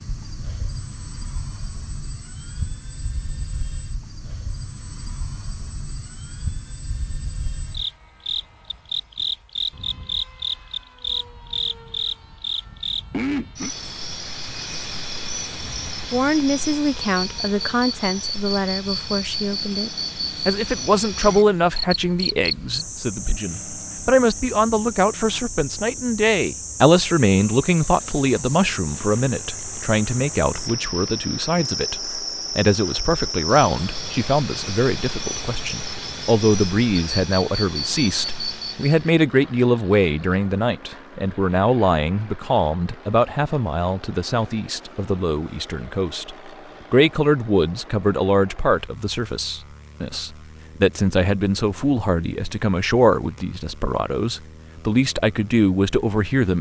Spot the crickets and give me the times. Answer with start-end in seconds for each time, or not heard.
0.0-39.1.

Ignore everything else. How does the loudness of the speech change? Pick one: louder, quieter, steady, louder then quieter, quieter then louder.
steady.